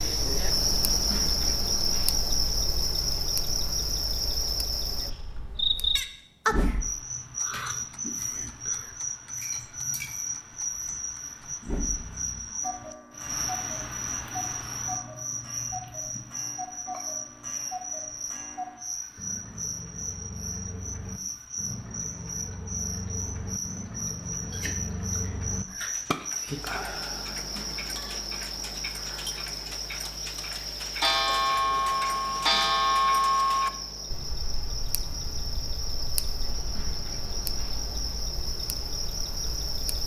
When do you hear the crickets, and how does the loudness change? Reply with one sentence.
You can hear the crickets from 0.0 to 40.0 s, getting quieter.